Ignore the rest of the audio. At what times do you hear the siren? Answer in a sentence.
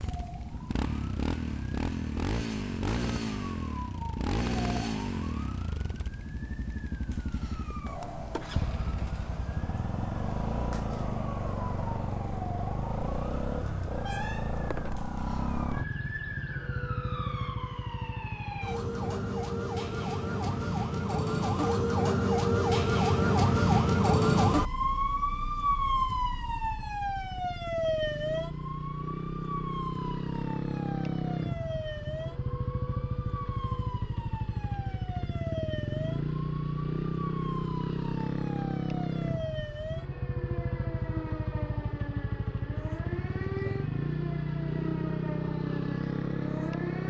You can hear the siren from 0.0 to 47.0 s.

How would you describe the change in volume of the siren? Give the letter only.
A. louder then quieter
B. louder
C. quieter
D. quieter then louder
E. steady
A.